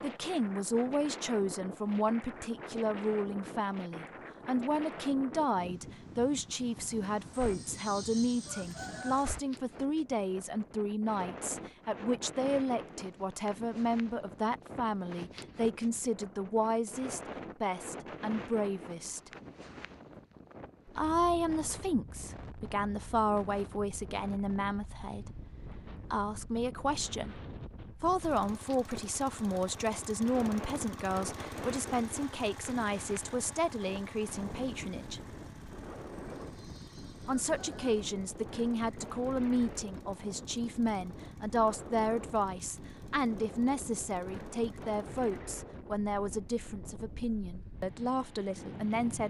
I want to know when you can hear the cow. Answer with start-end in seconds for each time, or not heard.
not heard.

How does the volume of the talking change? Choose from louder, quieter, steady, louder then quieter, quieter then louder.
steady.